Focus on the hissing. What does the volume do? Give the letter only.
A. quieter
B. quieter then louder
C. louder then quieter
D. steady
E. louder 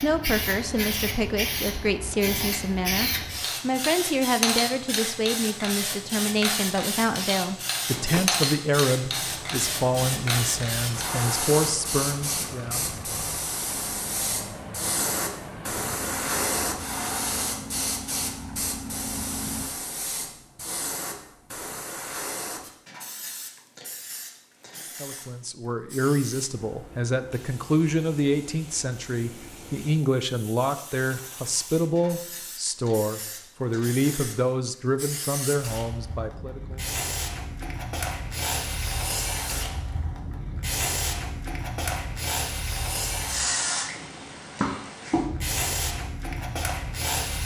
B.